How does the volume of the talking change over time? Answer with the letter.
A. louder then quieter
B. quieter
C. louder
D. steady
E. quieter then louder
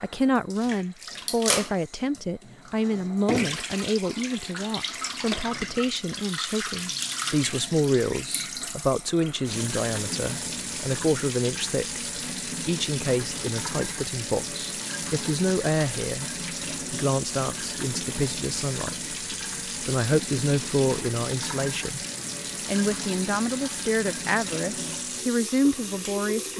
D.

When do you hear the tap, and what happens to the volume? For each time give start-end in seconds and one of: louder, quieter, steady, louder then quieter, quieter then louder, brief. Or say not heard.
0.0-26.5 steady.